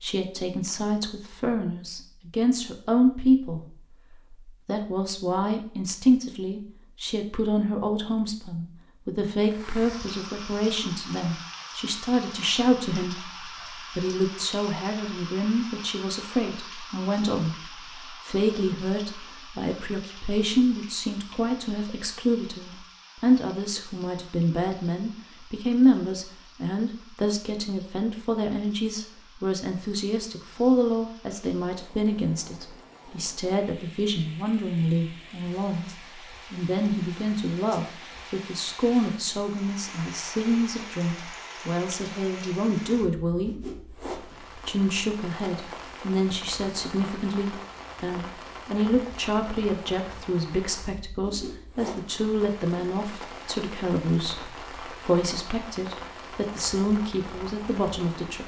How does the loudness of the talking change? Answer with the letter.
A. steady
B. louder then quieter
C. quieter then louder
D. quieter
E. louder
A.